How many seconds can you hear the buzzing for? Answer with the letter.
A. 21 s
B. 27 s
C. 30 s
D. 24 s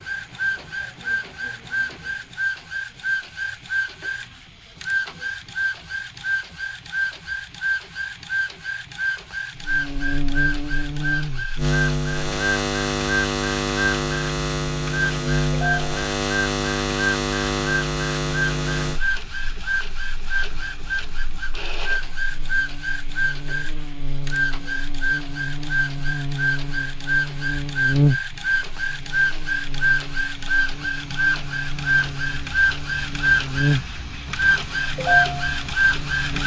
B.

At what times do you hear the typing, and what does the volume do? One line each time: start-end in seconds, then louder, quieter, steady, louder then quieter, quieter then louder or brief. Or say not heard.
not heard.